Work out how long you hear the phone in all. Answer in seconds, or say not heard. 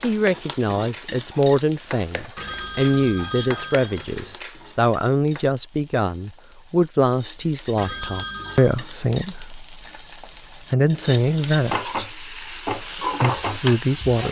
3 s.